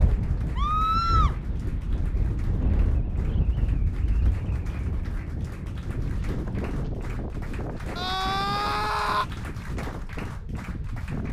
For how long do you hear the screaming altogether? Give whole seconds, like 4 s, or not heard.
2 s.